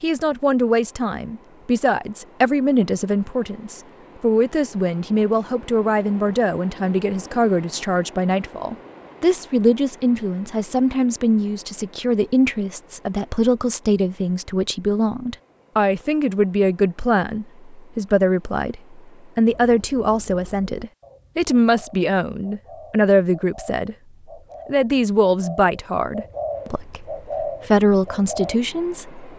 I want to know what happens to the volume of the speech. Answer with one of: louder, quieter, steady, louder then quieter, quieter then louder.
steady.